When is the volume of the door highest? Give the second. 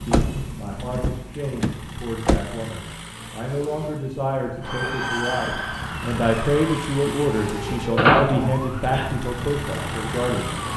8 s.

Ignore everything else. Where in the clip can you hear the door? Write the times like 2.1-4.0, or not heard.
0.1-2.5, 8.0-9.2.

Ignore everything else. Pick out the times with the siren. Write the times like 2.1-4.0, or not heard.
4.6-10.7.